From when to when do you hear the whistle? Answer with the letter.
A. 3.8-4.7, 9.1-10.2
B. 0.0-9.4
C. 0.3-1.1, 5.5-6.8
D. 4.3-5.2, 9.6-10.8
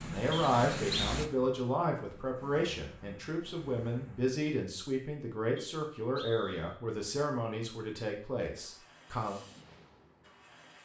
C.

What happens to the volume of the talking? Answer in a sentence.
The volume of the talking goes down.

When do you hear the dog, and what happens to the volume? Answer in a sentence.
The dog can't be heard in this clip.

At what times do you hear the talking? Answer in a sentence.
You can hear the talking from 0.0 to 9.4 s.